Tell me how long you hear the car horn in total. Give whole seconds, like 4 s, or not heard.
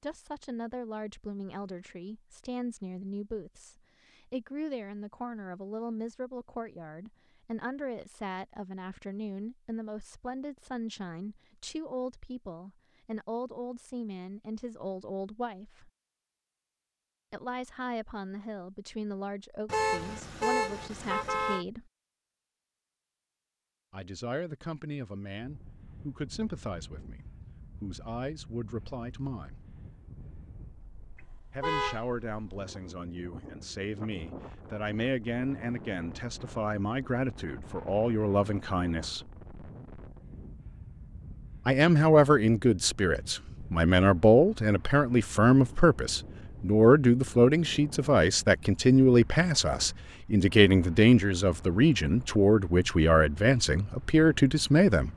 3 s.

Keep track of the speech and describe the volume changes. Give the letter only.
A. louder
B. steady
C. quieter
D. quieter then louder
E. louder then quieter
A.